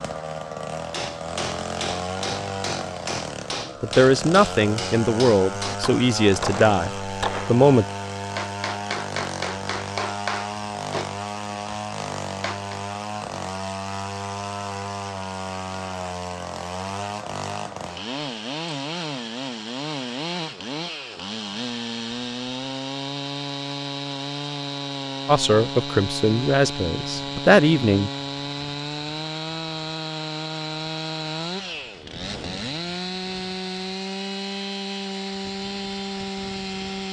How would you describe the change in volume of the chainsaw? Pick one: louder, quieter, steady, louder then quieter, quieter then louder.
steady.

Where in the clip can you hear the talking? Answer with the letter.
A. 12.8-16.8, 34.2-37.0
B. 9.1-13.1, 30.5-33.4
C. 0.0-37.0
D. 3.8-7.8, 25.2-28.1
D.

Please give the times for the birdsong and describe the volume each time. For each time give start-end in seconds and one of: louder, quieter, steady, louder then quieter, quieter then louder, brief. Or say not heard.
not heard.